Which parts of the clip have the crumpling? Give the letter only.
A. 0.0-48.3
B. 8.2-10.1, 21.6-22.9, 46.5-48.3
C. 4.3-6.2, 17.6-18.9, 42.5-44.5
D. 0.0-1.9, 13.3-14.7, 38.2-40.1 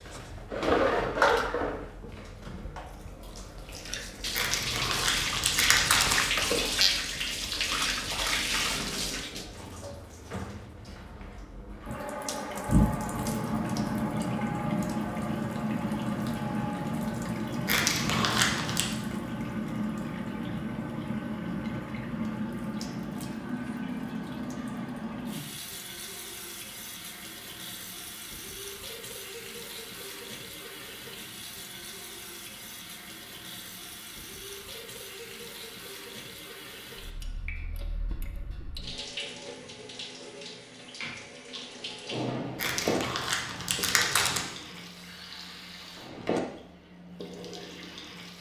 C.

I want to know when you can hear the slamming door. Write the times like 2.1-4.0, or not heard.
not heard.